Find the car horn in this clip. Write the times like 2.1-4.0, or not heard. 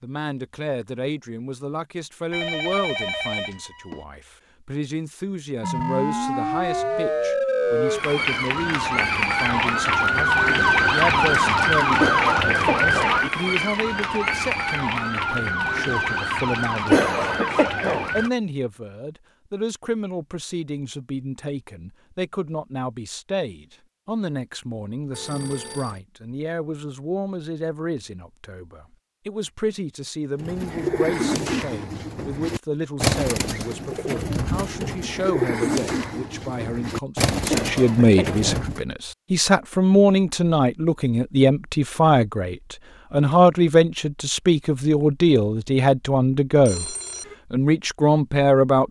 not heard.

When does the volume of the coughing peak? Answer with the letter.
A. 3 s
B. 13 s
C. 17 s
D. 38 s
C.